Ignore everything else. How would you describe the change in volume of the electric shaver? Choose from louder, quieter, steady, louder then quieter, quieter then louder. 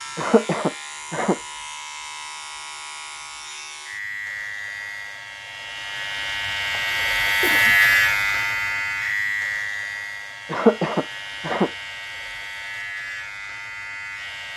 louder then quieter.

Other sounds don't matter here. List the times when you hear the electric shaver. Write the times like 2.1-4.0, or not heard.
0.0-14.5.